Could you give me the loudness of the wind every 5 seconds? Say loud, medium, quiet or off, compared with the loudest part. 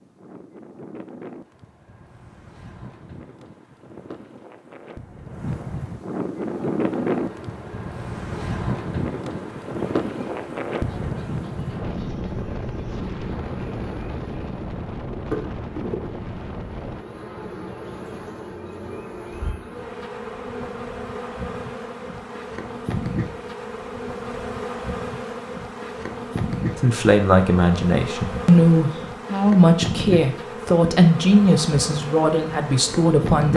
quiet, loud, loud, medium, off, off, off.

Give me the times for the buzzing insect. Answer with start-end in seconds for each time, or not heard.
6.4-33.5.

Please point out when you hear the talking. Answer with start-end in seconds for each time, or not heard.
26.8-33.5.